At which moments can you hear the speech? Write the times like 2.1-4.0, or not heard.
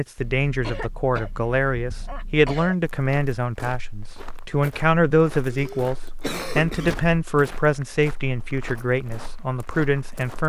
0.0-6.0, 6.5-10.4.